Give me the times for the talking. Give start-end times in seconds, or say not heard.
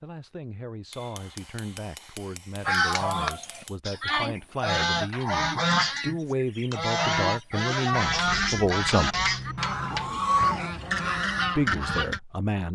0.0-9.3, 11.6-12.6.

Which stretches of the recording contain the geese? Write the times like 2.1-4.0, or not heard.
2.6-12.2.